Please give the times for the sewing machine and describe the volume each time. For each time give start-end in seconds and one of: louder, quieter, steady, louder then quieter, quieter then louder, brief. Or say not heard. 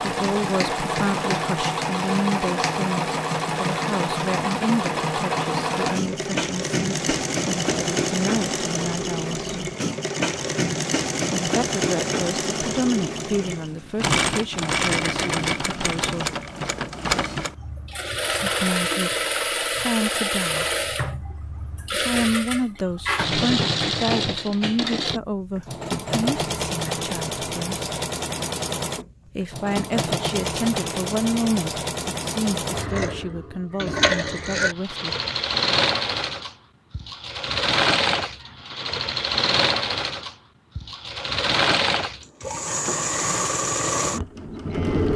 0.0-45.1 steady.